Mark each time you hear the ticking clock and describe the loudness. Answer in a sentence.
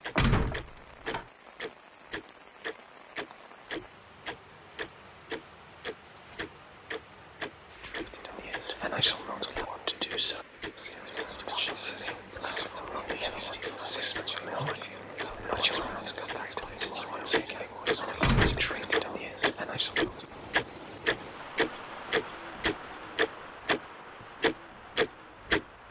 The ticking clock can be heard from 0.0 to 23.8 s, getting louder; and briefly from 24.4 to 25.6 s.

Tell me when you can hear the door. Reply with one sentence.
You can hear the door from 0.1 to 1.2 s and from 18.2 to 18.7 s.